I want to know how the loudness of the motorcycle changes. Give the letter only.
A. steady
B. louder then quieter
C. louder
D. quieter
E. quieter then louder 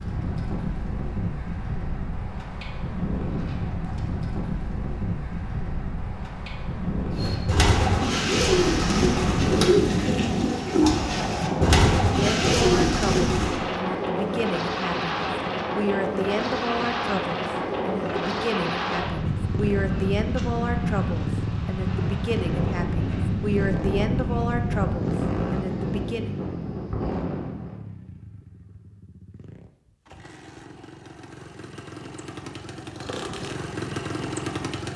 E.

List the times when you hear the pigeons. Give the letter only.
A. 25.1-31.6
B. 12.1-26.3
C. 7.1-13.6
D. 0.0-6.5
C.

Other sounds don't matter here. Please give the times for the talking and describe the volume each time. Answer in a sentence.
You can hear the talking from 12.1 to 26.3 s, at a steady volume.